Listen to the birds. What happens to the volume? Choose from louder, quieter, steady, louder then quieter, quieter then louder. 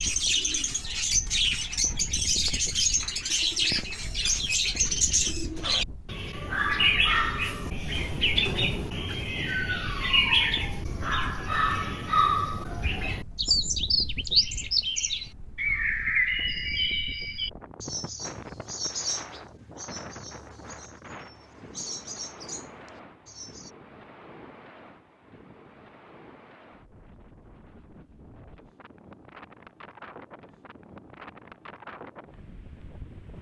quieter.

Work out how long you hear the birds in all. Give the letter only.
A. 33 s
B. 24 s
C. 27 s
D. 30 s
B.